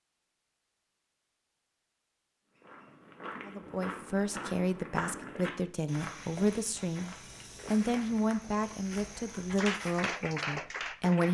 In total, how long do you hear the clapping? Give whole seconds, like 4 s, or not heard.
2 s.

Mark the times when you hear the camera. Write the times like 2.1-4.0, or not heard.
not heard.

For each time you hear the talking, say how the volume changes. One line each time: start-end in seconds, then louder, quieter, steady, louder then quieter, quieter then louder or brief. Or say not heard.
3.5-11.2 steady.